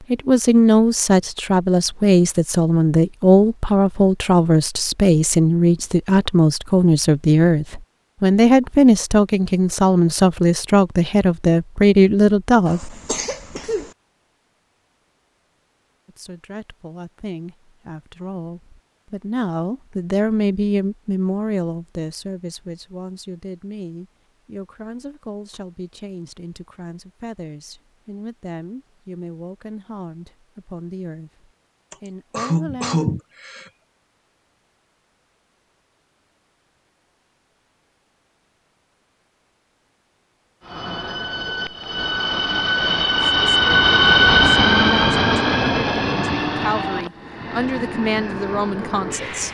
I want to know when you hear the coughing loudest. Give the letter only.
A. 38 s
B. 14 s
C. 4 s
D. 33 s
D.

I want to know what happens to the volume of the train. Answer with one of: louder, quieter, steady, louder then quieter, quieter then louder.
louder then quieter.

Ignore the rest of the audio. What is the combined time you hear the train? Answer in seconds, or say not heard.
9 s.